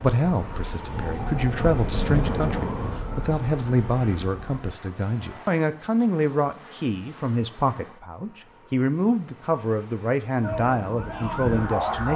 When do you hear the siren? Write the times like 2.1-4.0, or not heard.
0.0-4.7, 10.4-12.1.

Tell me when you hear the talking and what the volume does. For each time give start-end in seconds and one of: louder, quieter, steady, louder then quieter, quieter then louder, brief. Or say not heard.
0.0-12.1 steady.